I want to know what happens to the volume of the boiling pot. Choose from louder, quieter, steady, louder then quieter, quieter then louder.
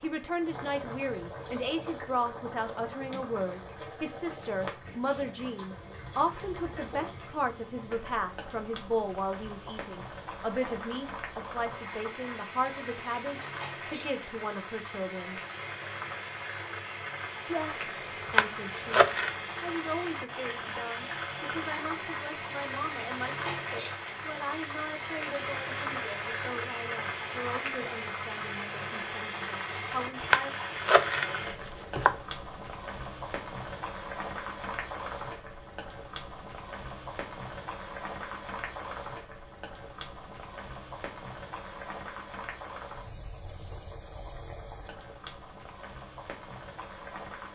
louder then quieter.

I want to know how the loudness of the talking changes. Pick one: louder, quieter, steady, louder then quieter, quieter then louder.
quieter.